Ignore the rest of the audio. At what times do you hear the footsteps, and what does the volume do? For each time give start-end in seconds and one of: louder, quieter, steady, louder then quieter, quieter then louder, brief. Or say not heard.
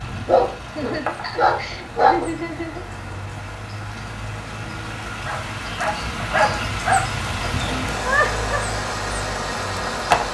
not heard.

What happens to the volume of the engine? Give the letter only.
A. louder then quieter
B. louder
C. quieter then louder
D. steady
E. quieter
B.